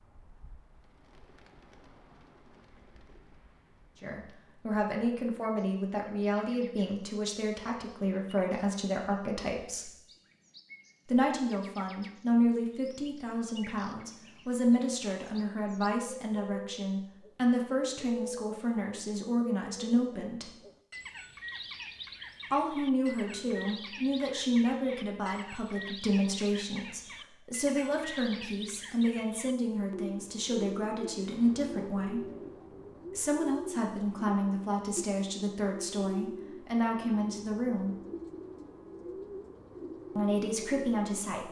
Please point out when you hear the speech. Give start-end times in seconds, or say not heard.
4.0-9.9, 11.1-20.5, 22.5-32.2, 33.1-38.0, 40.1-41.4.